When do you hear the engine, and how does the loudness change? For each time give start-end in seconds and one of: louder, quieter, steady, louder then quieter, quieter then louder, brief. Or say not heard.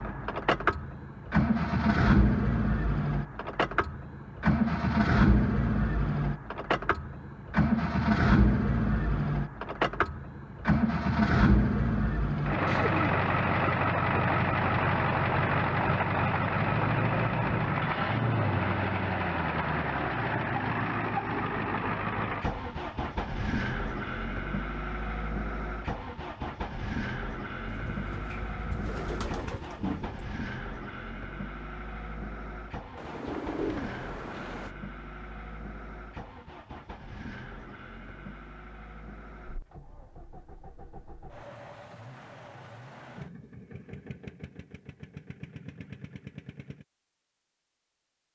0.0-46.9 quieter.